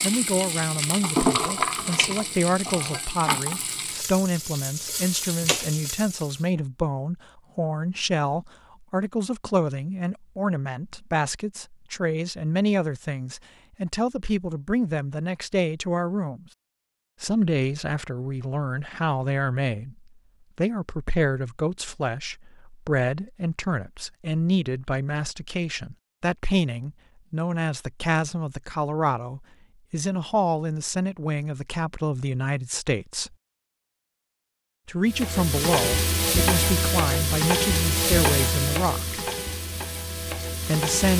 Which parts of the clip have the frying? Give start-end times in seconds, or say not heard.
0.0-6.5, 35.1-41.1.